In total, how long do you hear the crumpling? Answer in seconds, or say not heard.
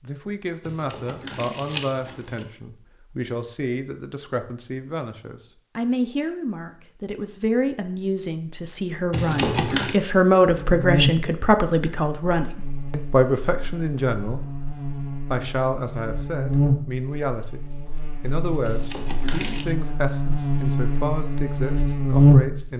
4 s.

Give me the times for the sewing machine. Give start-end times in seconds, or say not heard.
not heard.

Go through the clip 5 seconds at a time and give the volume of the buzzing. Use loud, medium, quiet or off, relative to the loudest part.
off, off, medium, medium, loud.